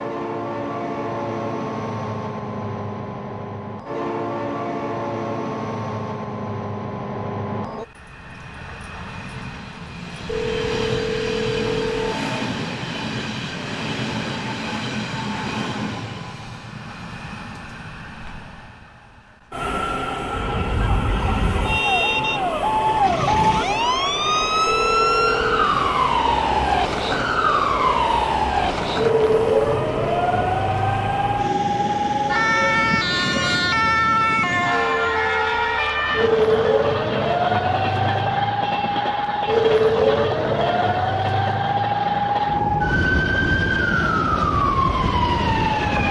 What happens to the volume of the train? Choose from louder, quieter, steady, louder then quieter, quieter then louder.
steady.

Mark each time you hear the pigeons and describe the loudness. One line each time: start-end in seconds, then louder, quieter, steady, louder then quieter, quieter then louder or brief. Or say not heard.
not heard.